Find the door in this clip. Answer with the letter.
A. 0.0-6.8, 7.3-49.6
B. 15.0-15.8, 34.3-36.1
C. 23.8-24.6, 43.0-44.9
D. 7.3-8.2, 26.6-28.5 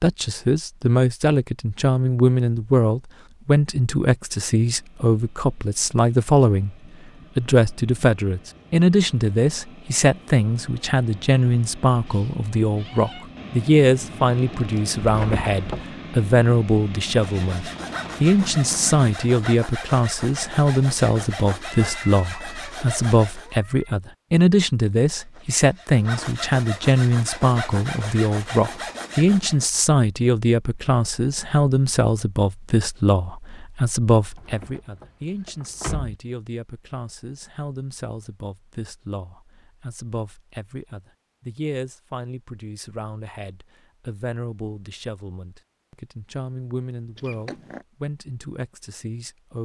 B.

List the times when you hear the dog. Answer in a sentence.
The dog can't be heard in this clip.